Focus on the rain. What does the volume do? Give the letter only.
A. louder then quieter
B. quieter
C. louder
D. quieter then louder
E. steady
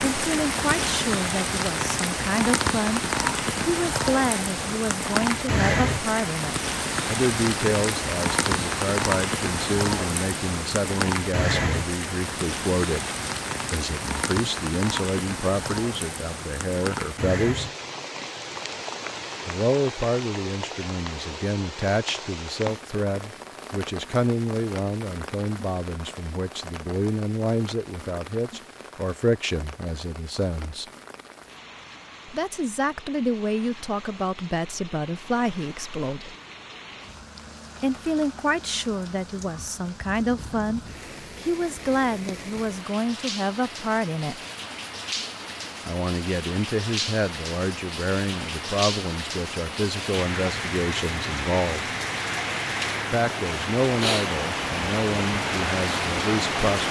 D.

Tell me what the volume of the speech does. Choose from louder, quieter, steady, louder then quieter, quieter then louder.
steady.